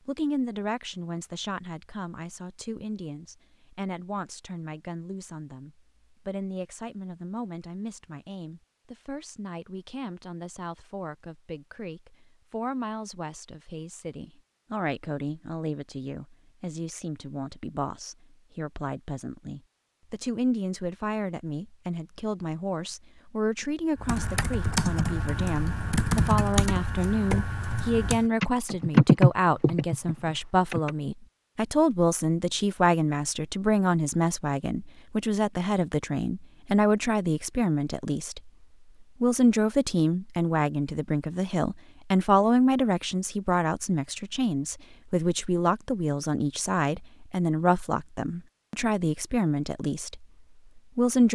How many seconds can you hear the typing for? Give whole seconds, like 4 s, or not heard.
7 s.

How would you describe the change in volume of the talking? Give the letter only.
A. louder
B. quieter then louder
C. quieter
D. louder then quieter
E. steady
A.